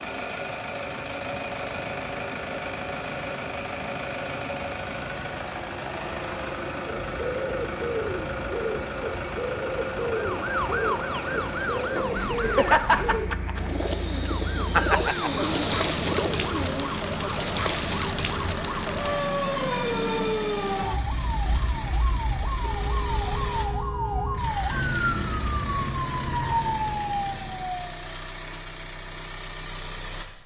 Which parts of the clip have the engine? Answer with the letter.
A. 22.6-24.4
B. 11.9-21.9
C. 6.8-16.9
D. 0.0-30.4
D.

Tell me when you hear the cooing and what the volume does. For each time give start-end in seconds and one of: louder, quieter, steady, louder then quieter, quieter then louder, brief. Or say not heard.
6.8-16.9 steady.